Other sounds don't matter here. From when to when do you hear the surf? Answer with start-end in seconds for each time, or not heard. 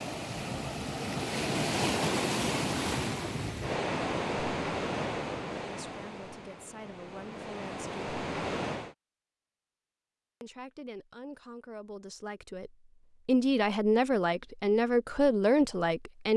0.0-8.9.